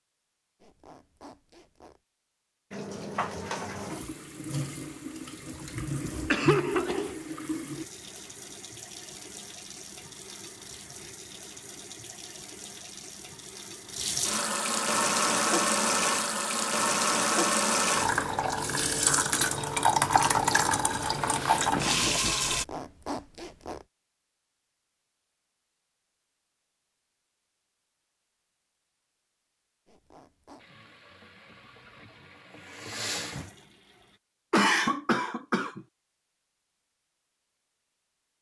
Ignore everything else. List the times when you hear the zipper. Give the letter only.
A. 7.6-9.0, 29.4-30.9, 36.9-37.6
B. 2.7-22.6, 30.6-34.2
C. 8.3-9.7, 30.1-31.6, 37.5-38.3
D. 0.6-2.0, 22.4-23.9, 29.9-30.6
D.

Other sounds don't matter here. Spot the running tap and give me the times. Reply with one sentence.
The running tap can be heard from 2.7 to 22.6 s and from 30.6 to 34.2 s.